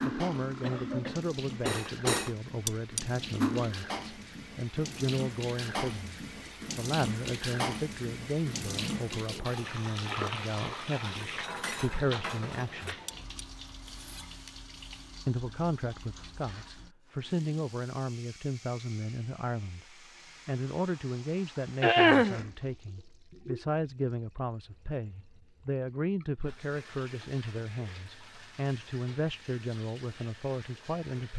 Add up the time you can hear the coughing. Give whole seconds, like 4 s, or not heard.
2 s.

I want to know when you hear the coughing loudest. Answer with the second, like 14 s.
22 s.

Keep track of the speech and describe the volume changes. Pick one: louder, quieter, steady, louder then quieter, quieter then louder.
steady.